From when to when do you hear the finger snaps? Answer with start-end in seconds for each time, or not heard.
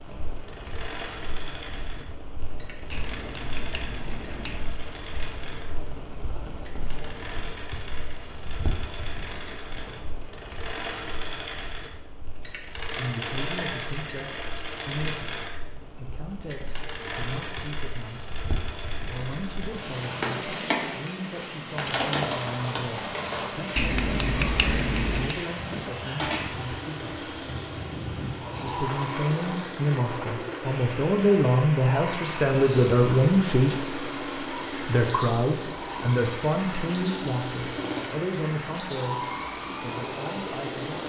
2.9-4.8, 23.8-25.4.